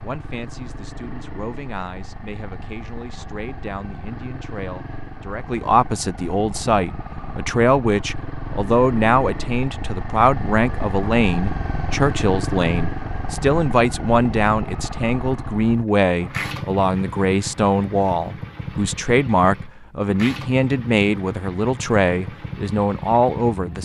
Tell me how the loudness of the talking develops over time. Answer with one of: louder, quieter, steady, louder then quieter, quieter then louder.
louder.